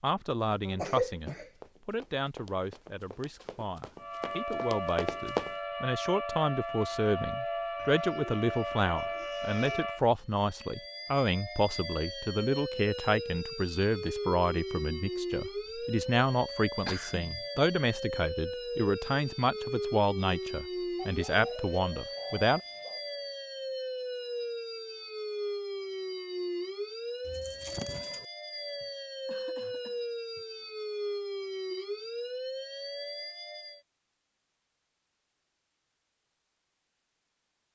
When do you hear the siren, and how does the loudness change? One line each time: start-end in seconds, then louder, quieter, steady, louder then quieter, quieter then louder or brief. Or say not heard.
4.0-33.8 steady.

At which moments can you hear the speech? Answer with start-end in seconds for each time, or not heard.
0.0-22.6.